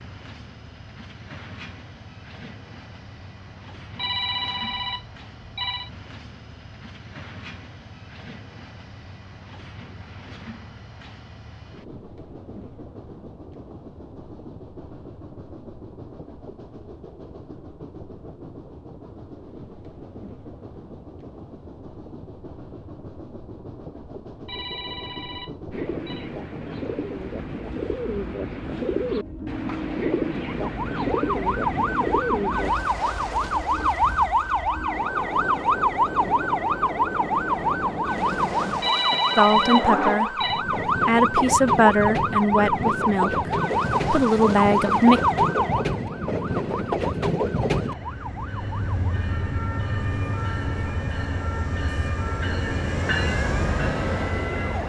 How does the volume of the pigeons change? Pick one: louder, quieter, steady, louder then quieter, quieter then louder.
louder.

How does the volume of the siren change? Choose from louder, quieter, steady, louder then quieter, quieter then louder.
quieter.